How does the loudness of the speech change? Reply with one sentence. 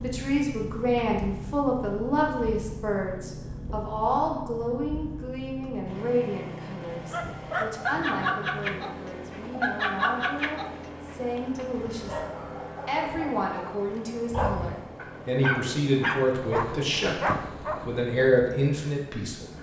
The loudness of the speech goes down, then up.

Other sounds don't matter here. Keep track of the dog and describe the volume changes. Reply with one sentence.
The loudness of the dog goes down, then up.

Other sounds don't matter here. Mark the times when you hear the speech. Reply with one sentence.
The speech can be heard from 0.0 to 19.5 s.